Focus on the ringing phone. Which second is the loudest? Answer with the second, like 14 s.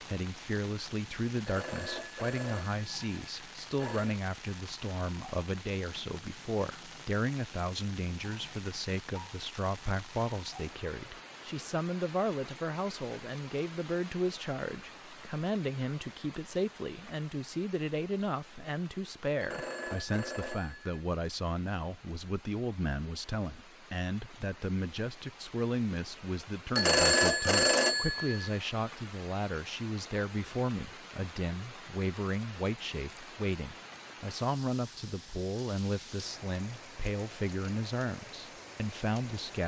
27 s.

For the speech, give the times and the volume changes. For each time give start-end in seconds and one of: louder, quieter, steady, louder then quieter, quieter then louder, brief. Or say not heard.
0.1-39.6 steady.